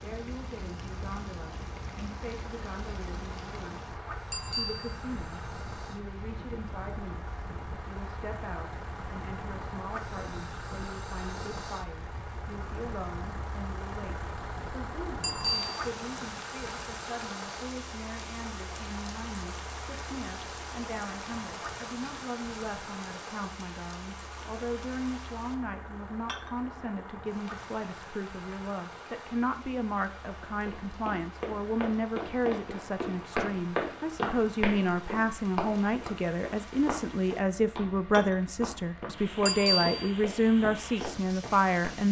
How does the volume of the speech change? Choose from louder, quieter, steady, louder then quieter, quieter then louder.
louder.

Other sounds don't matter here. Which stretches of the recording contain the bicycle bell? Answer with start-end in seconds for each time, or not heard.
4.3-5.0, 15.2-15.8, 39.5-40.1.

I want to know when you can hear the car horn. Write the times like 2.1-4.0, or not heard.
not heard.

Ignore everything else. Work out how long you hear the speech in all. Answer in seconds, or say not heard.
42 s.